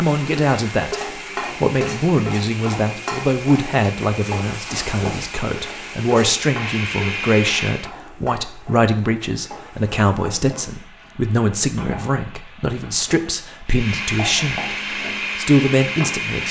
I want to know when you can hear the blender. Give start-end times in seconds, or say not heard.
0.0-7.9, 13.7-16.4.